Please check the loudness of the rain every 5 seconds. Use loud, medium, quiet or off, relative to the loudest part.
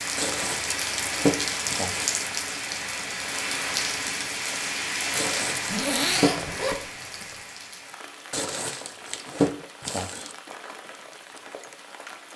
loud, medium, quiet.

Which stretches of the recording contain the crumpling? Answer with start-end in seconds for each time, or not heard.
0.1-2.2, 5.2-6.3, 8.3-10.3.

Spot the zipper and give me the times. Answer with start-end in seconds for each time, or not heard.
5.5-7.3.